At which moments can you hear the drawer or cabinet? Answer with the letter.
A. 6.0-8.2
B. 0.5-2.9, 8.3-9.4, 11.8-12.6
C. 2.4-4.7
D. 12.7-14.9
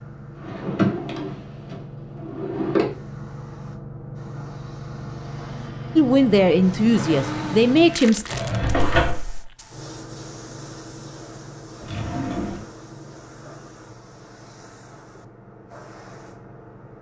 B.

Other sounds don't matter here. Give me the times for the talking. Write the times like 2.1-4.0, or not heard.
6.0-8.2.